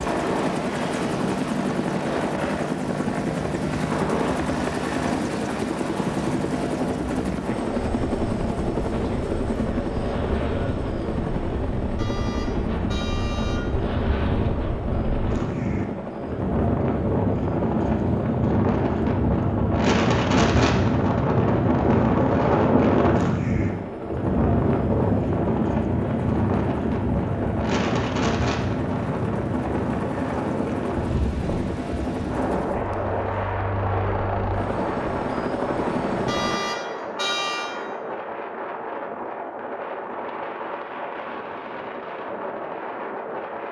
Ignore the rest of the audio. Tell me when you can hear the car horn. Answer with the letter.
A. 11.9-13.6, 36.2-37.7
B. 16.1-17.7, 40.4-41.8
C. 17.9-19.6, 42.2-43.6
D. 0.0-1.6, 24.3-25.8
A.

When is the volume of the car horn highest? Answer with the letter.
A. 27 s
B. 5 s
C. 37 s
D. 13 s
C.